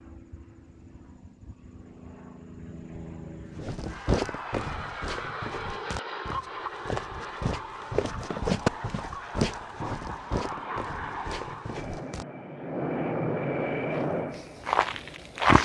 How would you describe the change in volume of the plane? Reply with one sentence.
The loudness of the plane goes up.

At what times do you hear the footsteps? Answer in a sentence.
The footsteps can be heard from 3.5 to 12.2 s and from 13.7 to 15.6 s.